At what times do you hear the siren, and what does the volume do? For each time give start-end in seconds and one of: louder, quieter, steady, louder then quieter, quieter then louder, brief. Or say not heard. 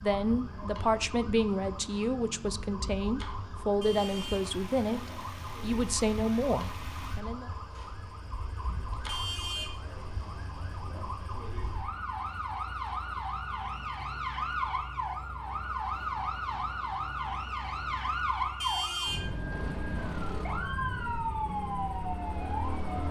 0.0-23.0 louder.